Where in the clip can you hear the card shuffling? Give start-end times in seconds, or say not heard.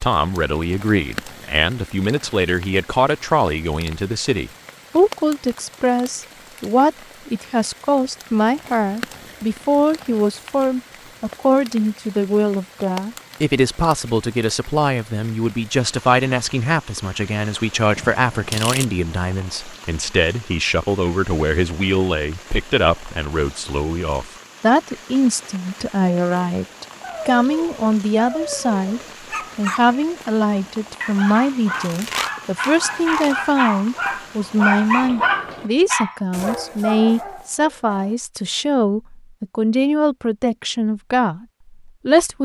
17.9-18.9, 31.7-33.4.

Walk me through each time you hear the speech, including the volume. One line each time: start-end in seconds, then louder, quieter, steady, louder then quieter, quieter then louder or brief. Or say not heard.
0.0-42.3 steady.